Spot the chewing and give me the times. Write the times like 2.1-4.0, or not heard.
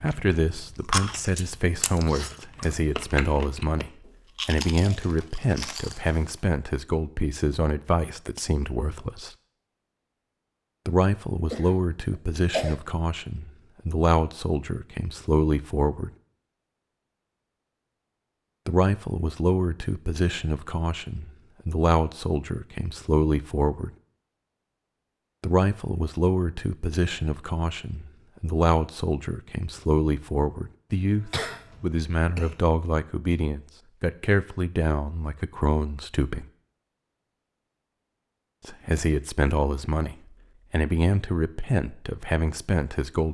0.0-6.4.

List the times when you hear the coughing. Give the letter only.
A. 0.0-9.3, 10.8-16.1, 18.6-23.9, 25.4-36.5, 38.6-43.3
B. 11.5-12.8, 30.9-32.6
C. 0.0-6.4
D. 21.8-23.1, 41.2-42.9
B.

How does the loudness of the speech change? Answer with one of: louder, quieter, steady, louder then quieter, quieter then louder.
steady.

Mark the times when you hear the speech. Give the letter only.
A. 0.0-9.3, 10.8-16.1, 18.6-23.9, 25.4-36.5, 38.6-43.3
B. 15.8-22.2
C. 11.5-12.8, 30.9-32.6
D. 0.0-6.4
A.